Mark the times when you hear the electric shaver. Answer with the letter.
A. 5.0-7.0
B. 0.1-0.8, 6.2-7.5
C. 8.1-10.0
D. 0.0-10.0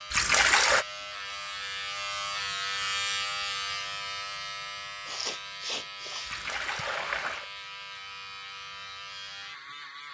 D.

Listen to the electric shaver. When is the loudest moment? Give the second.
3 s.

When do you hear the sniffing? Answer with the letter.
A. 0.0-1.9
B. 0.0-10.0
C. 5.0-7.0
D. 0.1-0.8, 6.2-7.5
C.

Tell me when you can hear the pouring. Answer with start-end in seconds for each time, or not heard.
0.1-0.8, 6.2-7.5.